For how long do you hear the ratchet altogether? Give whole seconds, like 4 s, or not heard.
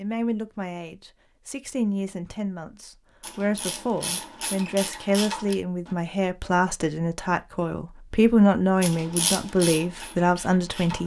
5 s.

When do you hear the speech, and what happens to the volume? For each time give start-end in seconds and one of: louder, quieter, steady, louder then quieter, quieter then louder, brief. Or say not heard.
0.0-11.0 louder.